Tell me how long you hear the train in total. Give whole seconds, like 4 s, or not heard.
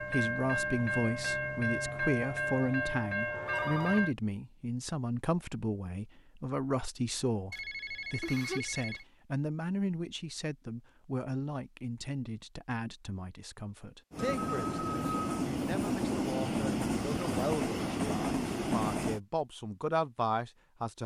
9 s.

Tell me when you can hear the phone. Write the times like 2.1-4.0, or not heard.
3.5-4.0, 7.5-9.1, 14.2-15.2.